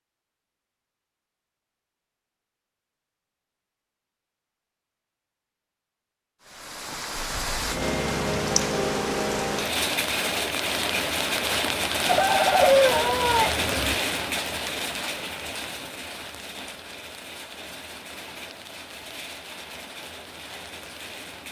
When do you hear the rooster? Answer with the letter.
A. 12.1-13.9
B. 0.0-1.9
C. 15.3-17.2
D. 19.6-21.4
A.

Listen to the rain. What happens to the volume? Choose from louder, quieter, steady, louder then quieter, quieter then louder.
quieter.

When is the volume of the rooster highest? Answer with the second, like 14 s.
13 s.